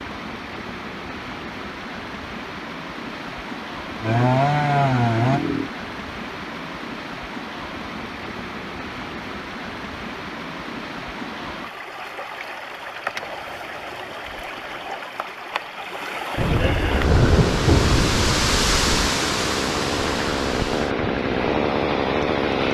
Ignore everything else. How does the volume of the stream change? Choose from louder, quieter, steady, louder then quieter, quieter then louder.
louder.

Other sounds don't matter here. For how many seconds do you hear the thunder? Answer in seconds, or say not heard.
3 s.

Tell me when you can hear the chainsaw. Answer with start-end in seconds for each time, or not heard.
4.0-5.7, 16.8-22.6.